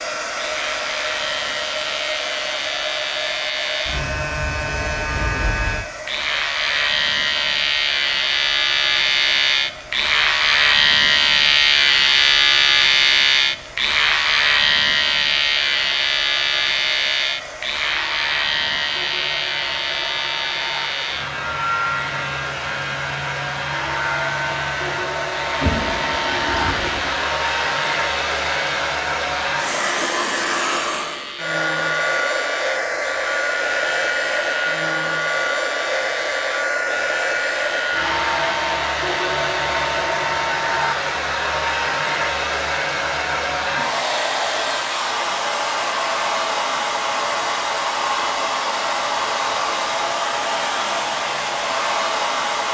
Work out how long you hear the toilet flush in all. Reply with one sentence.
You can hear the toilet flush for 2 seconds altogether.